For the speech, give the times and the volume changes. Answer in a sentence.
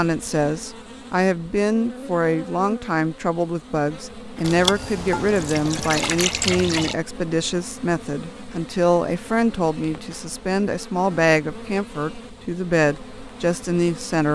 You can hear the speech from 0.0 to 14.2 s, at a steady volume.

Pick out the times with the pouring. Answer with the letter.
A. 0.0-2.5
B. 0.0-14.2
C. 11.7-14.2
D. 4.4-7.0
D.